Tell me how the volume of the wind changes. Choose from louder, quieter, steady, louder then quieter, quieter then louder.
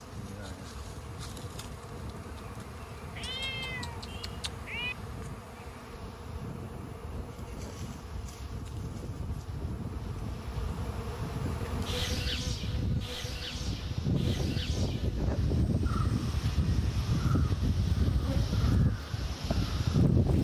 louder.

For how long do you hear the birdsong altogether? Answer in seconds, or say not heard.
not heard.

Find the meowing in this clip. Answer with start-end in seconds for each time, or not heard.
3.1-5.0.